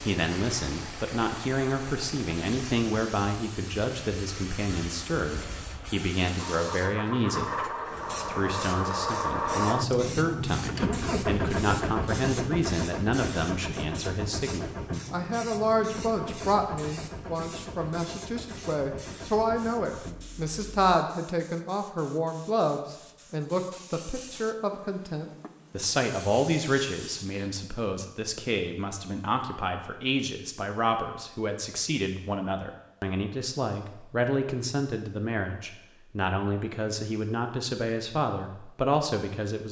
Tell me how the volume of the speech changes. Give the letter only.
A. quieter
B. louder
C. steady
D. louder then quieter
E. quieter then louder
C.